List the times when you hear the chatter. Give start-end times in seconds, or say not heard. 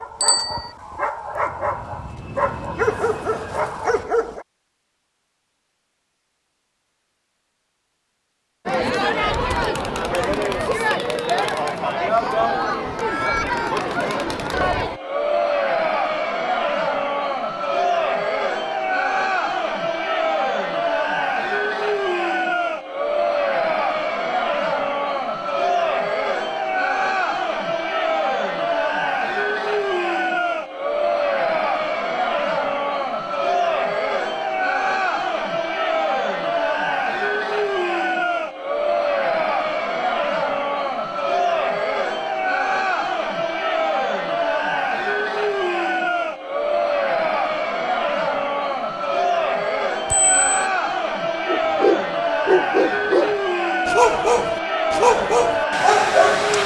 8.7-56.6.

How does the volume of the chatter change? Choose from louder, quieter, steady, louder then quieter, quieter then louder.
steady.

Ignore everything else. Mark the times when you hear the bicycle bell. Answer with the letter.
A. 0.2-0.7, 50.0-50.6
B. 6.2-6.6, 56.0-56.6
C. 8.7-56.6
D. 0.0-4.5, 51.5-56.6
A.